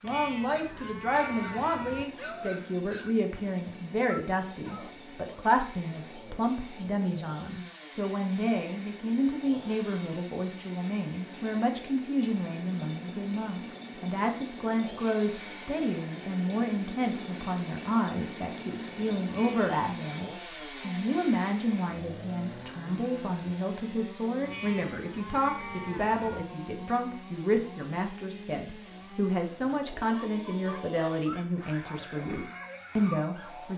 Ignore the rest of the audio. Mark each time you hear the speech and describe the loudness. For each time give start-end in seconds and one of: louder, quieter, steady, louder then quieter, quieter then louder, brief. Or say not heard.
0.0-33.7 steady.